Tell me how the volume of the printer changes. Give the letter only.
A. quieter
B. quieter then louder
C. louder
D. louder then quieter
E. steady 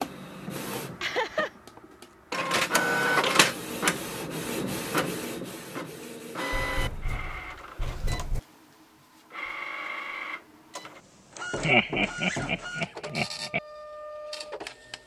A.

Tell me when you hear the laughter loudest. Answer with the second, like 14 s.
12 s.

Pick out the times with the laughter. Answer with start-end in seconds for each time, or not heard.
1.0-1.5, 11.6-13.6.